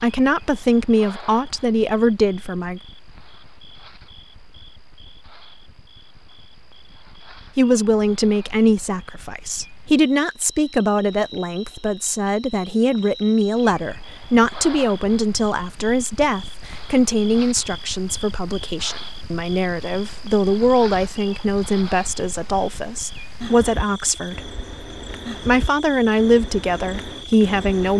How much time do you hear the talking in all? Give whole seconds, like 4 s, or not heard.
22 s.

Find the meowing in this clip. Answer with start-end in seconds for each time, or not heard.
not heard.